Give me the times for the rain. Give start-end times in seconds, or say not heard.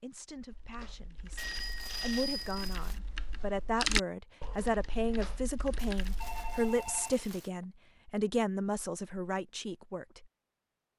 not heard.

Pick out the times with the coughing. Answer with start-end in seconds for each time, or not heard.
not heard.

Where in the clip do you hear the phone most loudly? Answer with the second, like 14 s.
2 s.